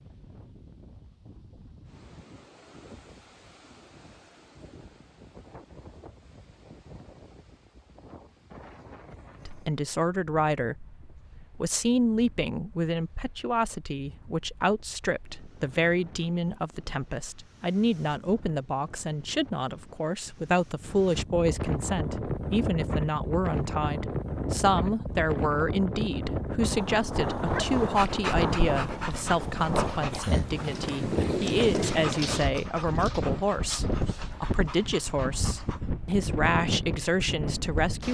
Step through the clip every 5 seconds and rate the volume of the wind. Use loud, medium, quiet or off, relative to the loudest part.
quiet, quiet, quiet, quiet, loud, loud, loud, loud.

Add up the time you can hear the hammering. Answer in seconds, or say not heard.
not heard.